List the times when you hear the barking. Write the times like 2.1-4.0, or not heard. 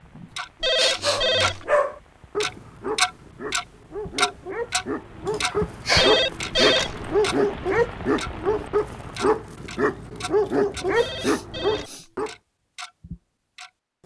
1.0-12.3.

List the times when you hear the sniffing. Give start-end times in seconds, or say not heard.
0.1-1.2, 5.2-6.8, 11.0-12.1.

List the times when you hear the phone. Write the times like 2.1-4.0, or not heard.
0.6-1.8, 6.0-7.1, 10.9-12.1.